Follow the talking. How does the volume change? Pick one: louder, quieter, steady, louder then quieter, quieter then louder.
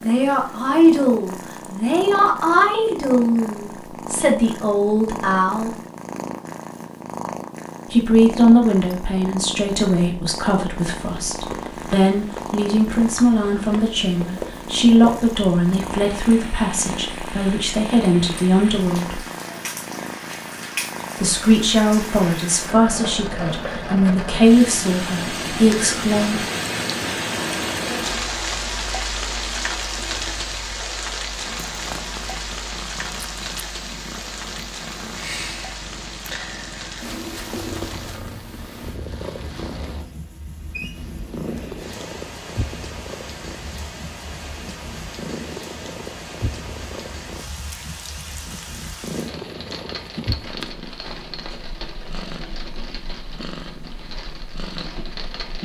steady.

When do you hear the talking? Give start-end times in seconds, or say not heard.
0.0-5.8, 7.9-19.2, 21.2-26.4.